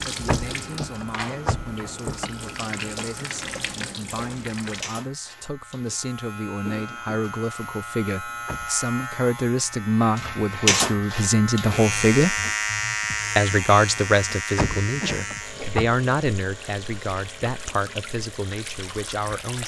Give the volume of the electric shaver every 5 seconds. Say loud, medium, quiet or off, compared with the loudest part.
quiet, medium, loud, quiet.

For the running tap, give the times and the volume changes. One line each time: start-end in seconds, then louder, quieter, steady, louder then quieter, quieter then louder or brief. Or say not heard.
0.0-4.8 steady
15.4-19.6 louder.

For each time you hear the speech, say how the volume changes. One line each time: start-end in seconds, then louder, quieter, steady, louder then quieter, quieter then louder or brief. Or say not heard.
0.0-12.3 louder
13.3-19.6 quieter.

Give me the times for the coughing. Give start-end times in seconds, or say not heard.
3.0-4.5, 6.6-7.2, 14.8-15.3.